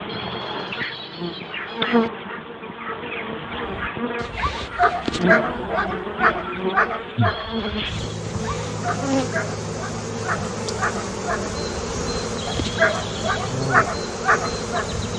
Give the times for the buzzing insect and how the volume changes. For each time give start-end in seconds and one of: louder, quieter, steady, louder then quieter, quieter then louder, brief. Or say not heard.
0.0-15.1 steady.